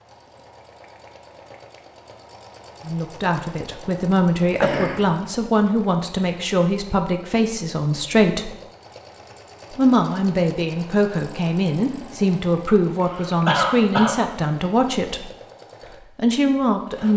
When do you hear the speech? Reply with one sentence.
The speech can be heard from 2.9 to 8.5 s, from 9.7 to 15.3 s and from 16.1 to 17.1 s.